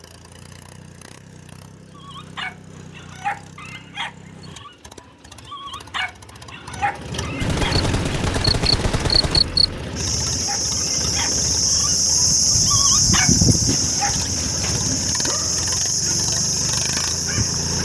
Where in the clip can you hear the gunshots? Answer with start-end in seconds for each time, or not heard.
7.4-9.4.